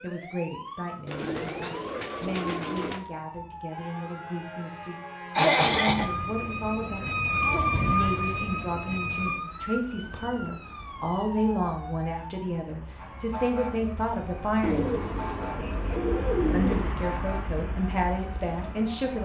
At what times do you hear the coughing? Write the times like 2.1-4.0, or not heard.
5.3-6.1.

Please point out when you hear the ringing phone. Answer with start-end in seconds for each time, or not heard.
not heard.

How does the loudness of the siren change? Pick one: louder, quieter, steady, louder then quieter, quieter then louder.
louder then quieter.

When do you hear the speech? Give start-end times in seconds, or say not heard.
0.0-7.2, 7.8-15.0, 16.5-19.2.